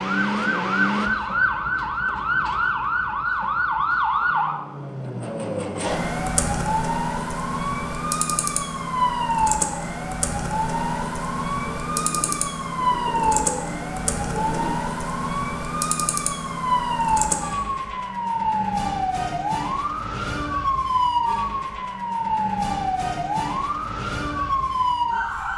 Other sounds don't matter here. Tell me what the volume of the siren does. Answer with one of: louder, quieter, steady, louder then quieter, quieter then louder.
steady.